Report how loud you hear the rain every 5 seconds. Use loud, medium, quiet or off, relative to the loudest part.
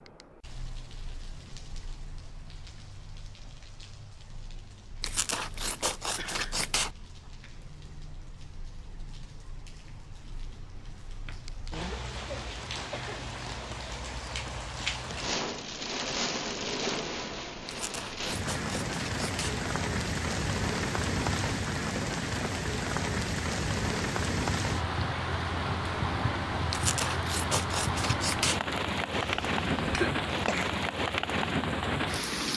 quiet, quiet, medium, loud, loud, loud, loud.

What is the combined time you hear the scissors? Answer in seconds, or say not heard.
6 s.